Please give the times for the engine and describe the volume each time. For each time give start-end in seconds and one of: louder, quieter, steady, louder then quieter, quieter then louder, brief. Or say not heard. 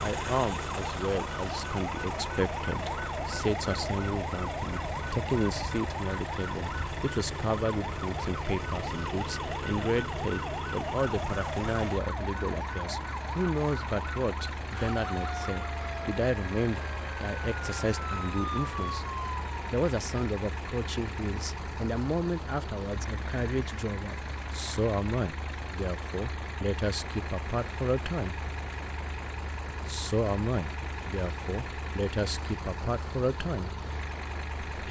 0.0-34.8 steady.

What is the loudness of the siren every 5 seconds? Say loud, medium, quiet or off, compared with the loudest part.
loud, loud, loud, loud, off, off, off.